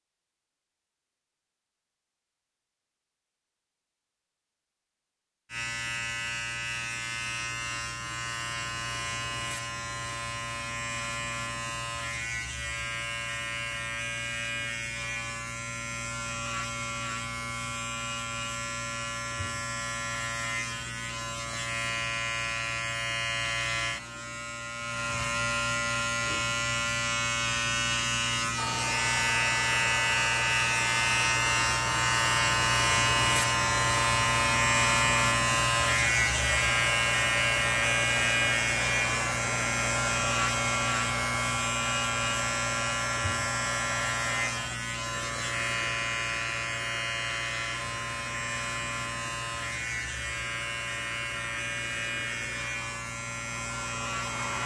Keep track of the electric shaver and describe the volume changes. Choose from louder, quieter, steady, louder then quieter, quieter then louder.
louder then quieter.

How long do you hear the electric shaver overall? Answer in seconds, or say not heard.
49 s.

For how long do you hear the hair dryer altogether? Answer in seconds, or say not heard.
26 s.